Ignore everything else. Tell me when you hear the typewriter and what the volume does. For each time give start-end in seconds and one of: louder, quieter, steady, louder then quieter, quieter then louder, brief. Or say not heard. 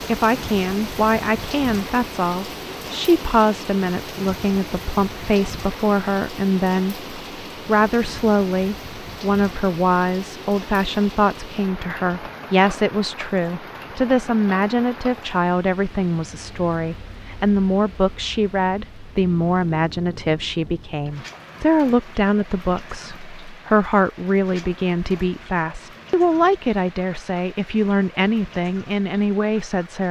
not heard.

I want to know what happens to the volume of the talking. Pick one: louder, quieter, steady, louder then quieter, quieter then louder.
steady.